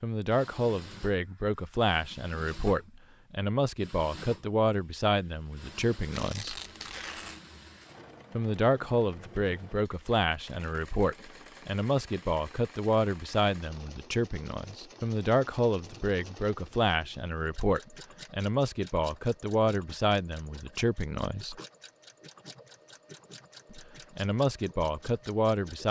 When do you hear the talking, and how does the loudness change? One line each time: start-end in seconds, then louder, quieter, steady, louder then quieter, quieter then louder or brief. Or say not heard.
0.0-6.6 steady
8.3-21.6 steady
23.7-25.8 brief.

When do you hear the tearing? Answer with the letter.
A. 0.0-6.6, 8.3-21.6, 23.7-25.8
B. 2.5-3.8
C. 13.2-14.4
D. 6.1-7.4
D.